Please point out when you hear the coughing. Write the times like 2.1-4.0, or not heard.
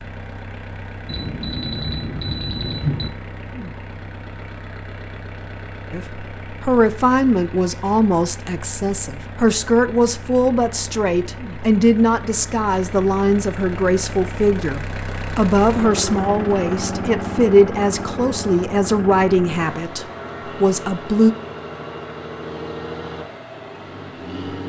not heard.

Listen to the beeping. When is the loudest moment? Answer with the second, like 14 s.
3 s.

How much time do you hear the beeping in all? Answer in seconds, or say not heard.
2 s.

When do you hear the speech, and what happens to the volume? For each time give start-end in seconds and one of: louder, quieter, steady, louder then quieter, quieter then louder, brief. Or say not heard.
5.9-21.4 steady.